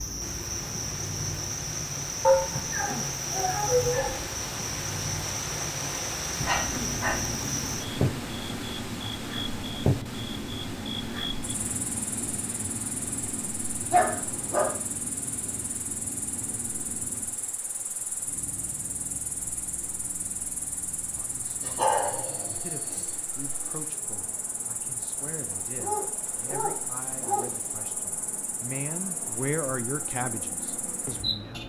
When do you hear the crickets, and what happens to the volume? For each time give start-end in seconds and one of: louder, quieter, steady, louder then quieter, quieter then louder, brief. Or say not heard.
0.0-31.6 quieter.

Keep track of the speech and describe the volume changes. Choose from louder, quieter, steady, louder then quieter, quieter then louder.
louder.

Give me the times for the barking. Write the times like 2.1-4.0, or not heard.
2.2-4.2, 6.4-7.3, 13.9-14.8, 21.6-23.1, 25.7-27.5.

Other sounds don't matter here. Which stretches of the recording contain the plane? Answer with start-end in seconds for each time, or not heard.
6.7-31.6.